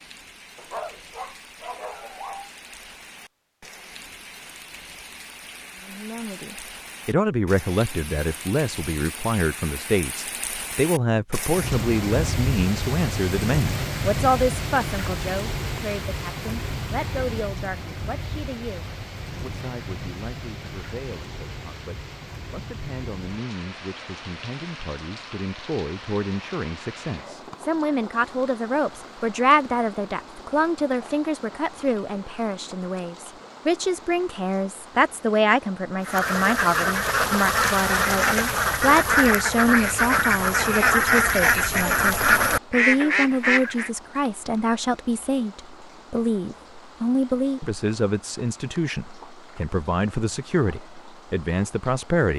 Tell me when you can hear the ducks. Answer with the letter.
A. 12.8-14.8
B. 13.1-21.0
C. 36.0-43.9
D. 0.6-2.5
C.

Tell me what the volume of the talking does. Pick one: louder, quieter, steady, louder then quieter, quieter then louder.
quieter then louder.